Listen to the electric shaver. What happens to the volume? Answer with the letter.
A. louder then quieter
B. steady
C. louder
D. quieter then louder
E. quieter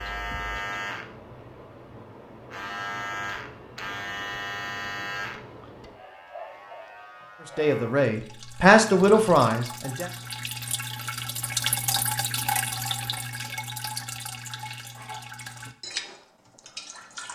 E.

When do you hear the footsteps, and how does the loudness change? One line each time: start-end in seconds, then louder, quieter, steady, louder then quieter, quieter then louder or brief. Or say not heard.
not heard.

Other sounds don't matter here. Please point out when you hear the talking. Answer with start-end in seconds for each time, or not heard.
7.4-10.1.